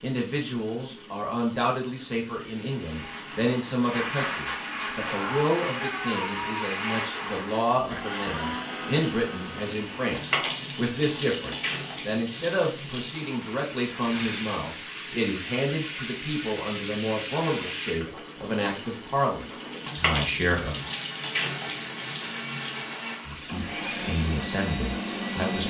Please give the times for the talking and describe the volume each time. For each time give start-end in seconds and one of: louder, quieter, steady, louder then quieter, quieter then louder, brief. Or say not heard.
0.0-20.9 steady
23.2-25.6 brief.